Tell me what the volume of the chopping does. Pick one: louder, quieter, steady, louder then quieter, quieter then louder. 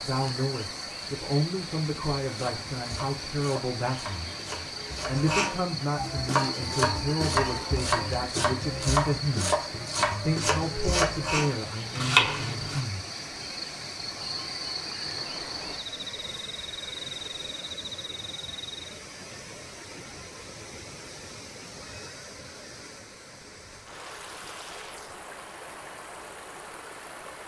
louder.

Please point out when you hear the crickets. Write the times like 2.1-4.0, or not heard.
0.0-18.9.